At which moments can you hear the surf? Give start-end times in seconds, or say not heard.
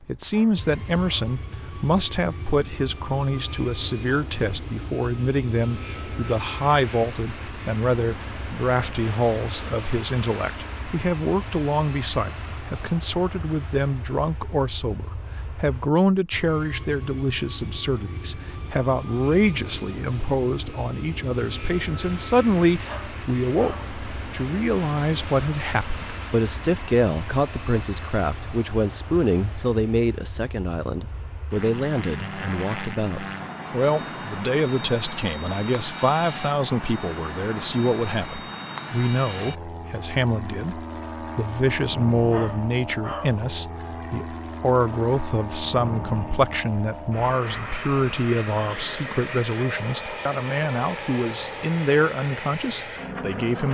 not heard.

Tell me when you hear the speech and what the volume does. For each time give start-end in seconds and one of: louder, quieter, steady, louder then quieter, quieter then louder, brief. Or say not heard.
0.0-53.6 steady.